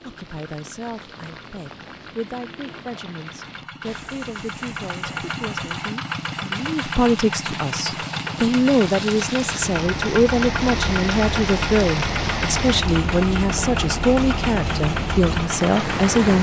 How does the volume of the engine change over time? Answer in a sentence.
The volume of the engine goes up.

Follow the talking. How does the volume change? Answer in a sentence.
The volume of the talking goes up.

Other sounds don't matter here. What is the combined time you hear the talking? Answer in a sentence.
You can hear the talking for 16 seconds altogether.